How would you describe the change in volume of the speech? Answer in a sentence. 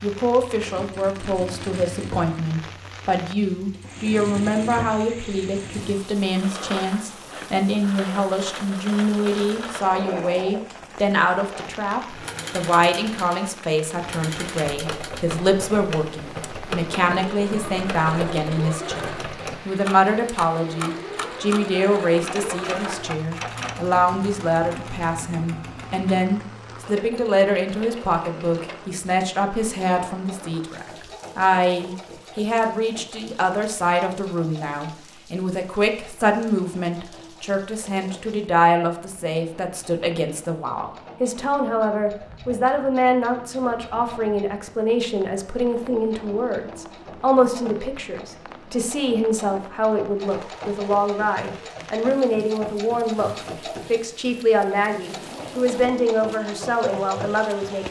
The loudness of the speech stays about the same.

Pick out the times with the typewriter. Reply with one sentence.
You can hear the typewriter from 14.4 to 23.8 s.